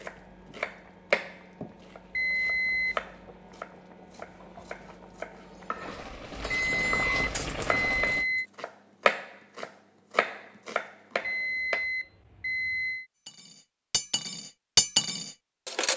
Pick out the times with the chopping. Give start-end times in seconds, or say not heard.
0.0-11.8.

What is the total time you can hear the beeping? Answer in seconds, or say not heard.
5 s.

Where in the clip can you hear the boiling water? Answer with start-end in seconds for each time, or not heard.
0.0-8.2.